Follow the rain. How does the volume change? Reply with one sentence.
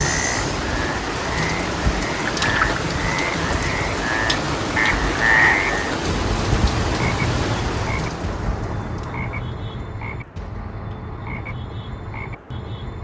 The loudness of the rain goes down.